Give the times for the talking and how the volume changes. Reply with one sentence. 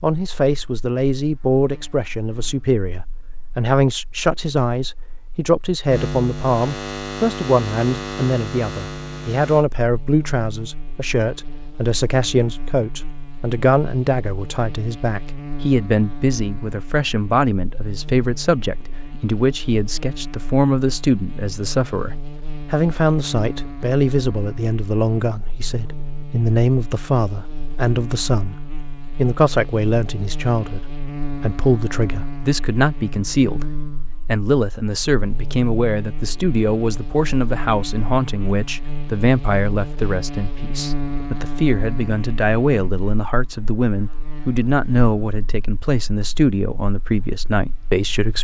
The talking can be heard from 0.0 to 48.4 s, at a steady volume.